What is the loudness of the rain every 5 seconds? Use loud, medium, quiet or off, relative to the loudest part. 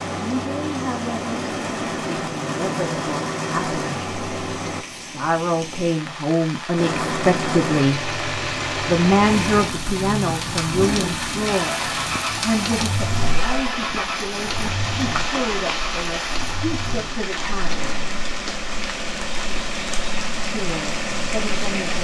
medium, loud, loud, loud, loud.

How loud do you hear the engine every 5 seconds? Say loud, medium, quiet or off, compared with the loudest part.
loud, loud, loud, medium, loud.